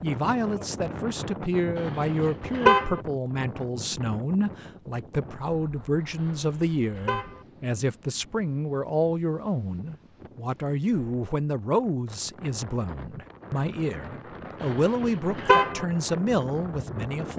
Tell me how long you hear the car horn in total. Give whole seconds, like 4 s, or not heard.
4 s.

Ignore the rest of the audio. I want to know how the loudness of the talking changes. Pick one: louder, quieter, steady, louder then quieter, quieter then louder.
steady.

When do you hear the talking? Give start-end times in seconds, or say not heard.
0.0-17.3.